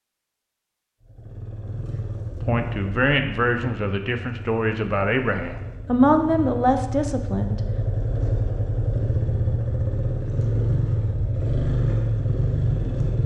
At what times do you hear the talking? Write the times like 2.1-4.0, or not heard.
2.5-7.6.